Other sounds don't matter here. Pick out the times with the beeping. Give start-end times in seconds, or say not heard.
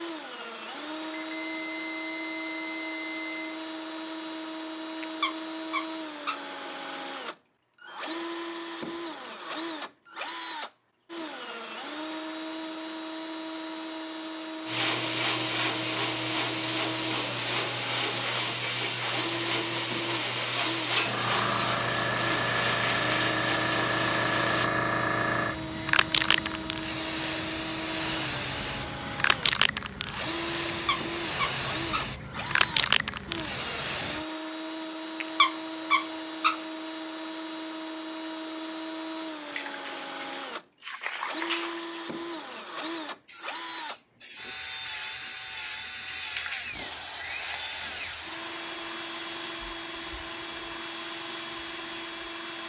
1.2-3.6.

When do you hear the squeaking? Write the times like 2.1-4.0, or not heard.
5.0-6.5, 30.7-32.1, 35.2-36.6.